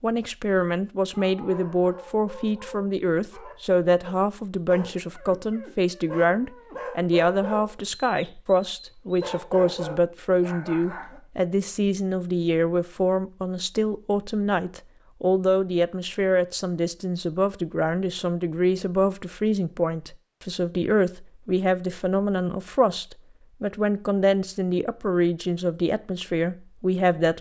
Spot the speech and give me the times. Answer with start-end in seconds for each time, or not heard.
0.0-27.3.